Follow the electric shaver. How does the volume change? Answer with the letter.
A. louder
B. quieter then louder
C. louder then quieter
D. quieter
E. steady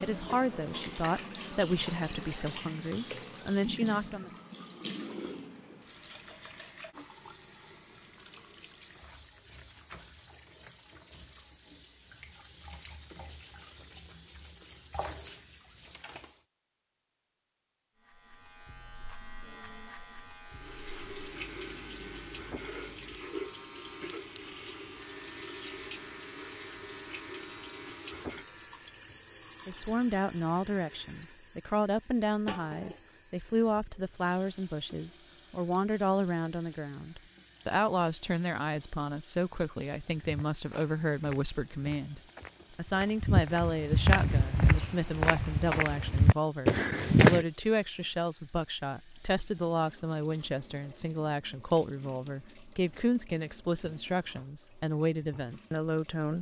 E.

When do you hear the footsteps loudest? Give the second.
47 s.